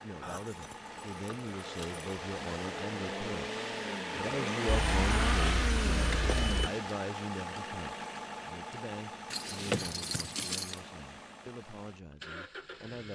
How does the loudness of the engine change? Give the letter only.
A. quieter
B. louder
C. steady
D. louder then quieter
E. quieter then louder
D.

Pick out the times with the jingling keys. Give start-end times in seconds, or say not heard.
0.2-2.0, 4.7-6.7, 9.3-10.8.